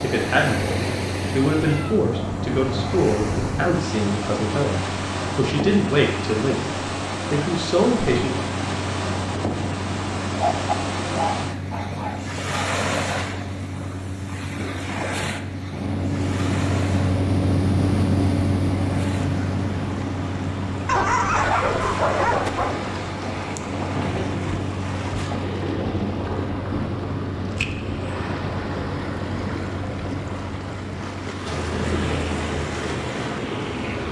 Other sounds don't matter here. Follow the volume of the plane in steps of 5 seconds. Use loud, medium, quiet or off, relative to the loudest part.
medium, medium, medium, loud, medium, medium, medium.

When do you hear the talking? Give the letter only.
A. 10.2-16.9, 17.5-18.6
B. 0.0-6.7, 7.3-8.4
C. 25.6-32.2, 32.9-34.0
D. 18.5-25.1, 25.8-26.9
B.